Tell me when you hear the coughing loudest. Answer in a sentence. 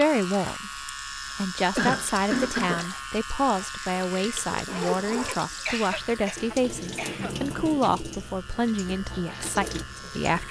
The loudest moment of the coughing is at 2 seconds.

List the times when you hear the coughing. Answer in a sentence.
The coughing can be heard from 1.2 to 2.9 s and from 5.5 to 7.3 s.